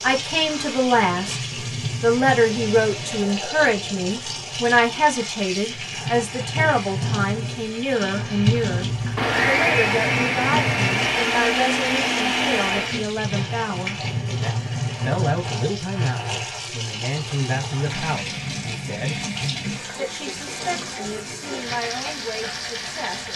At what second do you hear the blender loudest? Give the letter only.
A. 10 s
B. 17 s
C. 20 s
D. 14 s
A.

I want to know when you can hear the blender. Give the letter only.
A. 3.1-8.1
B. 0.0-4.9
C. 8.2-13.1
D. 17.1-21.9
C.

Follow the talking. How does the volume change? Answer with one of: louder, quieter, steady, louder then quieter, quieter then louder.
quieter.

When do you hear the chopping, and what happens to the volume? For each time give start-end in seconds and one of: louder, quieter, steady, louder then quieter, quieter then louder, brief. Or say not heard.
not heard.